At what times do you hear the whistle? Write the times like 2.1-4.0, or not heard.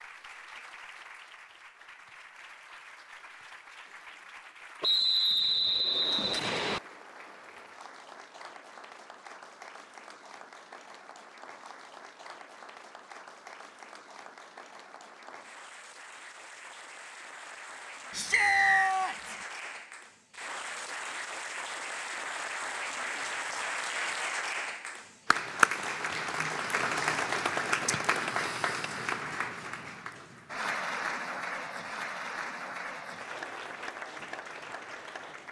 4.8-6.8, 18.3-18.9.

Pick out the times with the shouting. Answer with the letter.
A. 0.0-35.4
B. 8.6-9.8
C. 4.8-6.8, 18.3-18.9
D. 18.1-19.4
D.